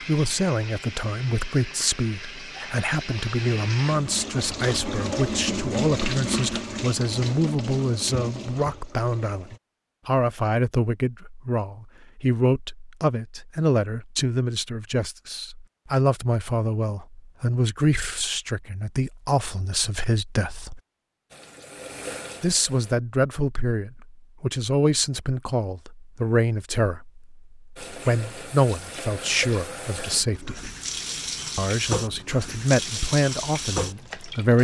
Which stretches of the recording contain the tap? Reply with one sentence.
You can hear the tap from 0.0 to 9.6 s, from 21.3 to 22.9 s and from 27.8 to 34.5 s.